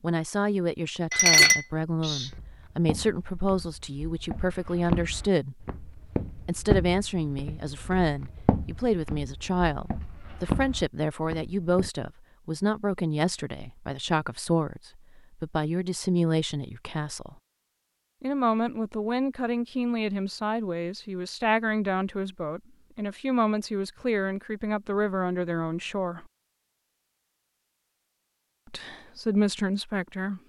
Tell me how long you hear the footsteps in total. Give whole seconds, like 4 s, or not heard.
10 s.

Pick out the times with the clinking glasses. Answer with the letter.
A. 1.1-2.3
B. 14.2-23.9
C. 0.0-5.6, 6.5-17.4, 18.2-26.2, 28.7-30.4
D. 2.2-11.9
A.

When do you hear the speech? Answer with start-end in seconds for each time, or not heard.
0.0-5.6, 6.5-17.4, 18.2-26.2, 28.7-30.4.